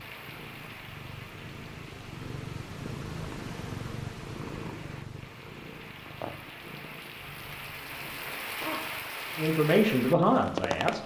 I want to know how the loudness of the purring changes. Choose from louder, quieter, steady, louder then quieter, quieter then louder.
louder then quieter.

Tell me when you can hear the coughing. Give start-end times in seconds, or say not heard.
7.2-8.9.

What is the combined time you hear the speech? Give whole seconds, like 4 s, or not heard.
2 s.